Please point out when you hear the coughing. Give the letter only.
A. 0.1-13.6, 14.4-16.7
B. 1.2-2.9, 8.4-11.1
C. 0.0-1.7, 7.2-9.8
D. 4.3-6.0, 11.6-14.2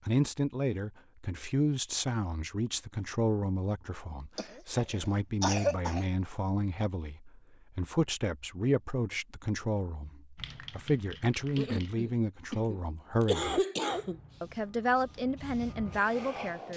D.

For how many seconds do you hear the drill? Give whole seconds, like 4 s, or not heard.
not heard.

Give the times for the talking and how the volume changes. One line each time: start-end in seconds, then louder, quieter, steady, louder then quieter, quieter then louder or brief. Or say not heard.
0.1-13.6 steady
14.4-16.7 brief.